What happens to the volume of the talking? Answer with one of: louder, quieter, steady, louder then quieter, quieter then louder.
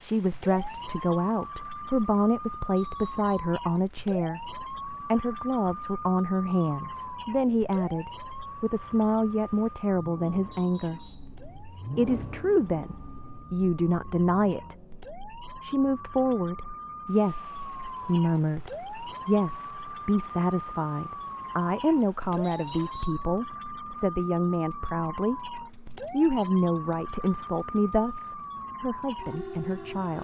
steady.